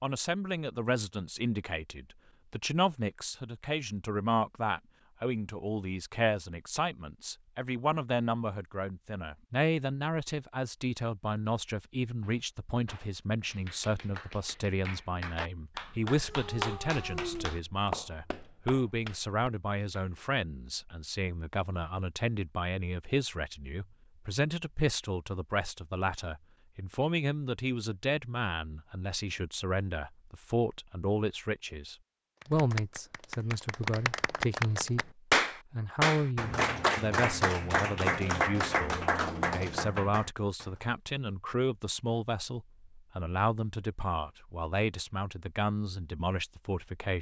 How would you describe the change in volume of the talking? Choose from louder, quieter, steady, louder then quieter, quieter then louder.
steady.